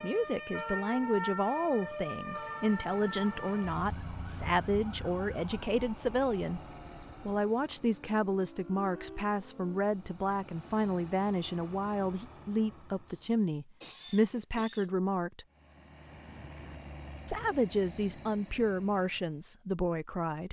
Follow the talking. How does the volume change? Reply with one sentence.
The loudness of the talking stays about the same.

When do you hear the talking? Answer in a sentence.
You can hear the talking from 0.0 to 6.6 s, from 7.2 to 15.4 s and from 17.2 to 20.4 s.